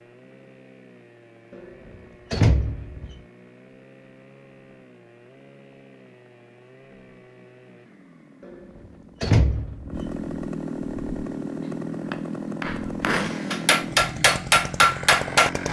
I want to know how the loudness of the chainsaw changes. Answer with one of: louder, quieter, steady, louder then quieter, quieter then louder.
louder.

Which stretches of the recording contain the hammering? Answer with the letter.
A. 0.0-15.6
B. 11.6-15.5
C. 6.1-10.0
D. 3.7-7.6
B.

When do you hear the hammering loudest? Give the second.
15 s.